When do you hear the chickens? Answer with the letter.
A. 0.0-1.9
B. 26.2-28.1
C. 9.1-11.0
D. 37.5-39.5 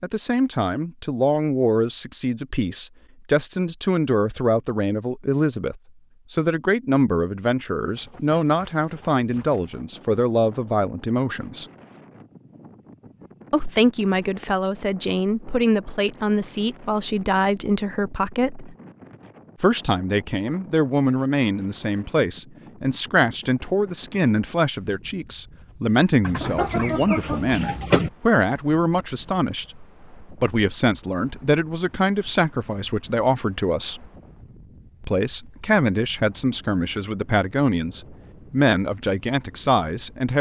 B.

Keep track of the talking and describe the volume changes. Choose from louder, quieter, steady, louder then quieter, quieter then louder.
steady.